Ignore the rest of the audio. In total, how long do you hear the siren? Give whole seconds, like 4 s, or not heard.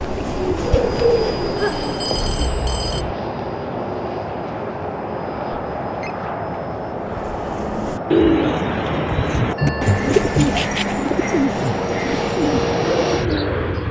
not heard.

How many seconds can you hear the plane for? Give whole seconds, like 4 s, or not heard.
14 s.